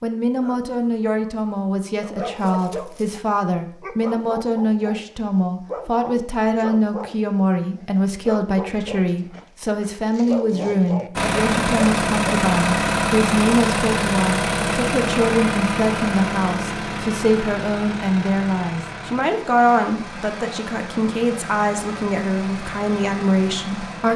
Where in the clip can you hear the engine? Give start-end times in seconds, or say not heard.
11.2-24.1.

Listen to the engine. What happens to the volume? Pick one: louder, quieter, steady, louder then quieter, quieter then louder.
quieter.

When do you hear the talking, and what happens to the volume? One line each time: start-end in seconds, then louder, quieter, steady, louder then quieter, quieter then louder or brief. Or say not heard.
0.0-24.1 steady.